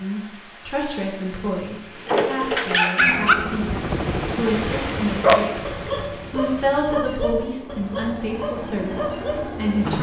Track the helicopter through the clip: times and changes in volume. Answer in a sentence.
The helicopter can be heard from 3.0 to 9.9 s, getting quieter then louder.